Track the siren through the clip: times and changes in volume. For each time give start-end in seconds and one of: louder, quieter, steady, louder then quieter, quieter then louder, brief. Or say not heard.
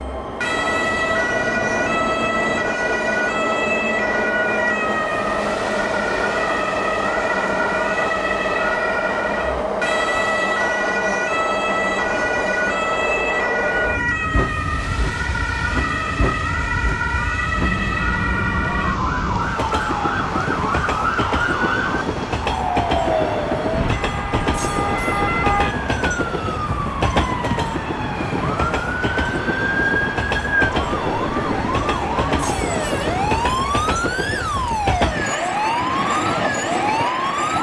0.0-37.5 steady.